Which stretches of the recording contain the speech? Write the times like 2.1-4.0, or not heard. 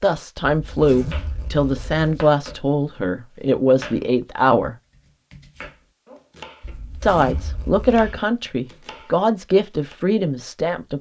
0.0-4.8, 7.0-10.9.